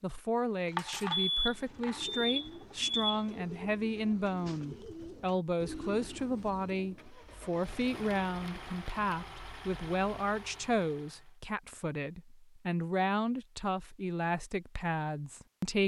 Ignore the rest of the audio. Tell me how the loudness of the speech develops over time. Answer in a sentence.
The loudness of the speech stays about the same.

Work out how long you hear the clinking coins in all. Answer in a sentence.
You can hear the clinking coins for 2 seconds altogether.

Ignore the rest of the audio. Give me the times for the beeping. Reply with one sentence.
The beeping can be heard from 0.8 to 3.2 s.